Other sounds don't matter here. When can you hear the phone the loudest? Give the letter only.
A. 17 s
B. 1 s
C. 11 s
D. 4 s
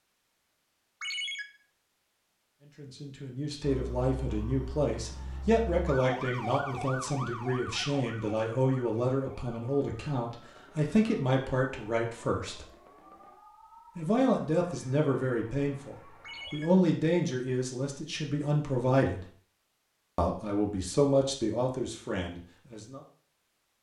B.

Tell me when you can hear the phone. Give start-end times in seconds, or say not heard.
1.0-1.4, 16.2-16.7.